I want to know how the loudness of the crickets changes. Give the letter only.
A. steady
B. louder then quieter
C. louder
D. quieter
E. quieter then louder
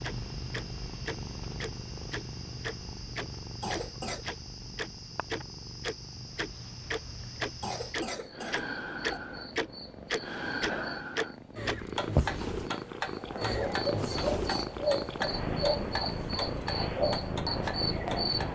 C.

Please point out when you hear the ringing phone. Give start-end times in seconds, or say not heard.
not heard.